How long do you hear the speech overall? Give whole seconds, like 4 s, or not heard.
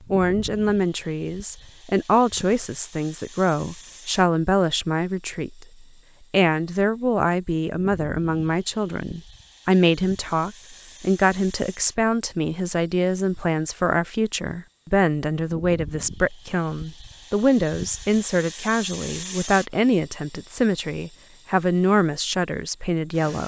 23 s.